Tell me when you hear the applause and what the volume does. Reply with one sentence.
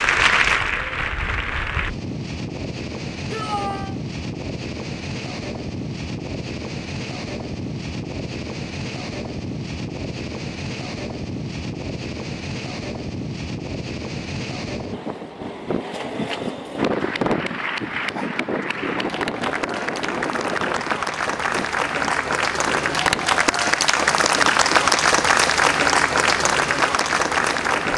The applause can be heard briefly from 0.0 to 1.9 s; and from 16.8 to 27.9 s, getting louder.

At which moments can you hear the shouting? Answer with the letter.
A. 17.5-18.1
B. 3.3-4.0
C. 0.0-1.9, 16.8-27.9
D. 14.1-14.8
B.